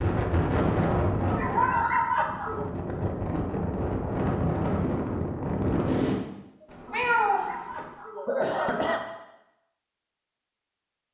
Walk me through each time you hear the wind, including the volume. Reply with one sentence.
The wind can be heard from 0.0 to 6.2 s, getting quieter then louder.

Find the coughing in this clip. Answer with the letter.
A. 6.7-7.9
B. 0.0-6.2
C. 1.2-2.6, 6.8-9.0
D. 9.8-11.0
C.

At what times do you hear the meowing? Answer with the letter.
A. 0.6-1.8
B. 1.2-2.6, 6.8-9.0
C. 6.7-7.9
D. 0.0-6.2
C.